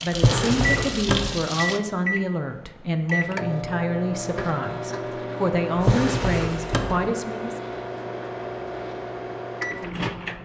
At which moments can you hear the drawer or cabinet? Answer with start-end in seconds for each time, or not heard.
0.1-1.4, 5.8-7.0.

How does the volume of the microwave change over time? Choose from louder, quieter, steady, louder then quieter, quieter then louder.
steady.